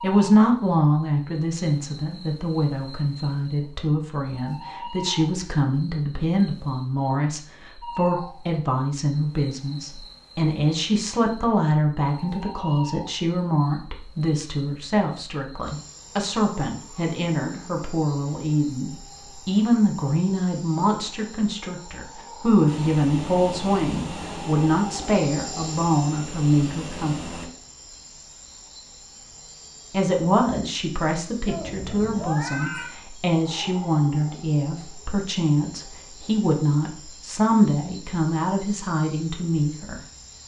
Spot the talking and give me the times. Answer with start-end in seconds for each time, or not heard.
0.0-27.4, 29.9-40.0.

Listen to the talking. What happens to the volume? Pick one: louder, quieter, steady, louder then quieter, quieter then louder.
steady.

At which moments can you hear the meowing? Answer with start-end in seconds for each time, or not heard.
31.4-33.0.